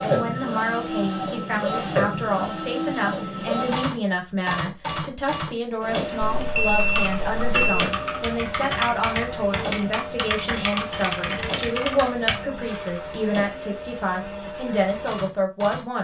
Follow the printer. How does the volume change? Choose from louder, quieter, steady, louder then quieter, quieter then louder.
quieter.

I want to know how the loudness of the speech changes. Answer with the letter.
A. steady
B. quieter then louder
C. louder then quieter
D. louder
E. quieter
A.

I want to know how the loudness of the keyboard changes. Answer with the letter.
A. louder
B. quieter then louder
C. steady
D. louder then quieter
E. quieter
C.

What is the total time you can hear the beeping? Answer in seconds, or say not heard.
2 s.